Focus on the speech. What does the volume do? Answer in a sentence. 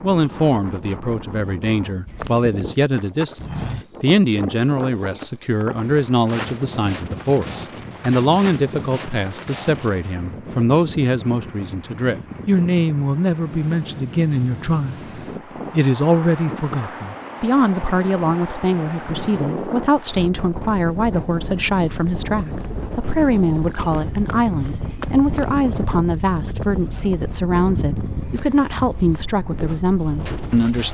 The loudness of the speech stays about the same.